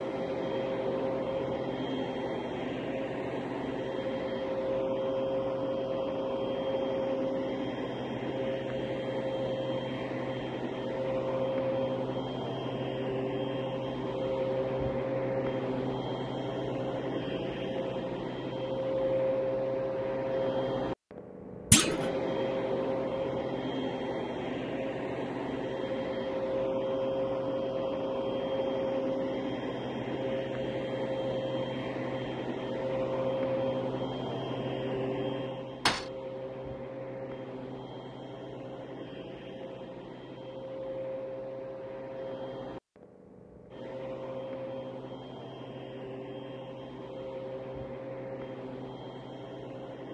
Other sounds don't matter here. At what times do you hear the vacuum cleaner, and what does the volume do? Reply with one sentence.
The vacuum cleaner can be heard from 0.0 to 50.1 s, getting quieter.